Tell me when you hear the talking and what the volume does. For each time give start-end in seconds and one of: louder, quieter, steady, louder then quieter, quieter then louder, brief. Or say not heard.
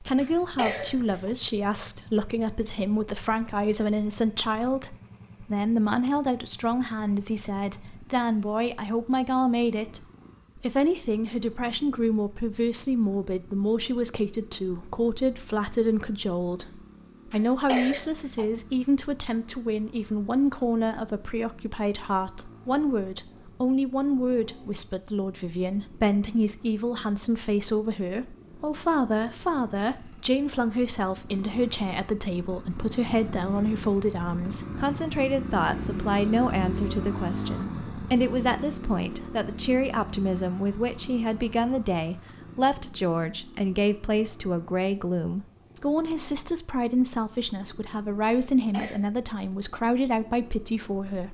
0.0-51.2 steady.